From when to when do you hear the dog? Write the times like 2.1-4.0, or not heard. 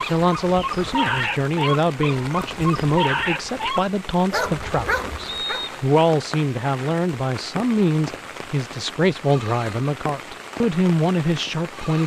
0.0-5.7.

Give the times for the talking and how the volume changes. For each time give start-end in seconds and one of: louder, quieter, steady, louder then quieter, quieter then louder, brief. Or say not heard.
0.0-12.0 steady.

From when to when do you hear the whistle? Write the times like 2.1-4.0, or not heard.
5.2-5.8.